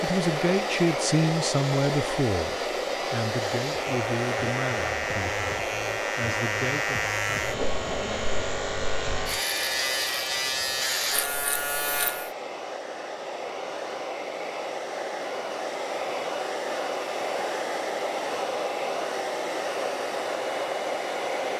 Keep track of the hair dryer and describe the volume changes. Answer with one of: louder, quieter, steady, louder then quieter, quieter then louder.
quieter then louder.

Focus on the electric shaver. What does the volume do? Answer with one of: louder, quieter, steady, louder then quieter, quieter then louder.
louder.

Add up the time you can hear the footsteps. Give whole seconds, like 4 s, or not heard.
not heard.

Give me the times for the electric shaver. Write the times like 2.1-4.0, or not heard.
0.0-12.3.